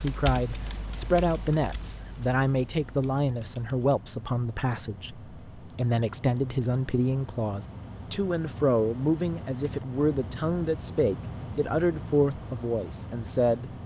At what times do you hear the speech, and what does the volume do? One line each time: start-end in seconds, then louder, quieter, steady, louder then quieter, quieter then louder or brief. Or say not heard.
0.0-13.7 steady.